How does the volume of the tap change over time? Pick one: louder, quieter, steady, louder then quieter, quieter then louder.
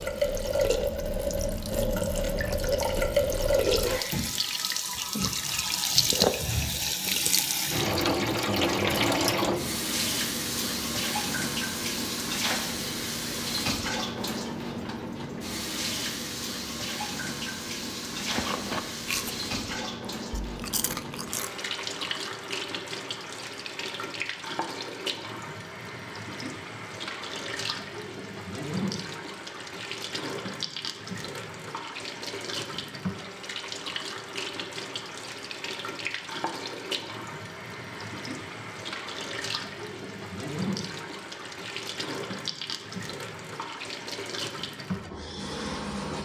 quieter.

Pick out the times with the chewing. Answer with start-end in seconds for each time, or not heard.
18.1-21.5.